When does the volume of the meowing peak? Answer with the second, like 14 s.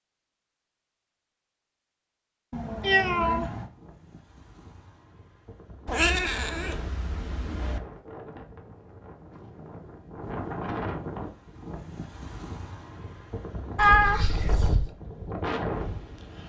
14 s.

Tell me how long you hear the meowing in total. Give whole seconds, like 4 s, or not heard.
4 s.